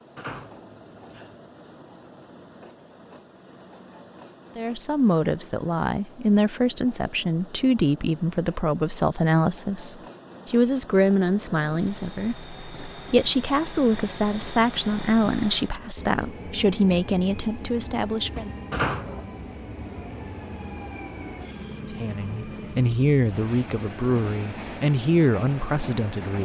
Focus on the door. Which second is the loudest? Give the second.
19 s.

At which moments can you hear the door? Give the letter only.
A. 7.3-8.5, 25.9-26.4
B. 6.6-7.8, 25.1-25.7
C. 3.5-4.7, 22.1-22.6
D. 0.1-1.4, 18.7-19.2
D.